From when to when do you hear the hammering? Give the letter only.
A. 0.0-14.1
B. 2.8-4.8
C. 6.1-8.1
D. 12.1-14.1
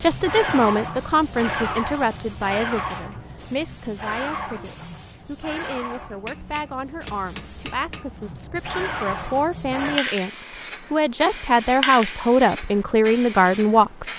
C.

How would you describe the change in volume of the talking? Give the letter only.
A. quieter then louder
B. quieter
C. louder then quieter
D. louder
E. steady
A.